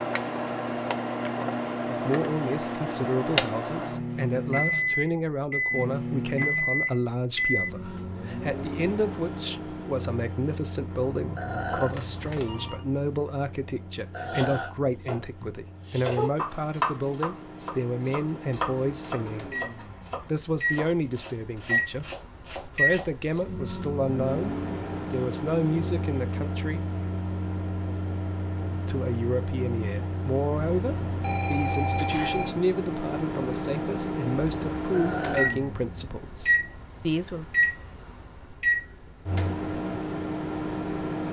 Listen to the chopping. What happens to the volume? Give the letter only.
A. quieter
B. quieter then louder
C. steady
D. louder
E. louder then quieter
A.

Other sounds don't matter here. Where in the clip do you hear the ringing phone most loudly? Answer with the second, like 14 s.
32 s.